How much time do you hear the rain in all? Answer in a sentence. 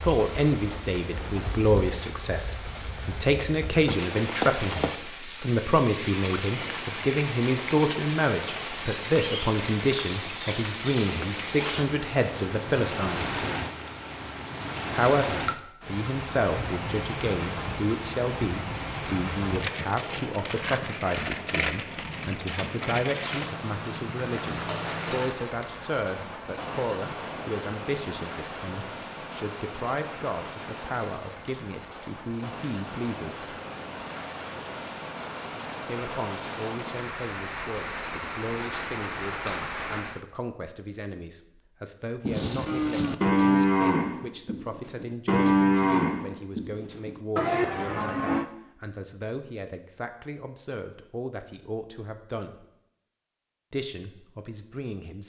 You can hear the rain for 40 seconds altogether.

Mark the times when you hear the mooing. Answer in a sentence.
The mooing can be heard from 42.2 to 48.5 s.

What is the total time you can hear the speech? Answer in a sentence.
The speech can be heard for 50 seconds in total.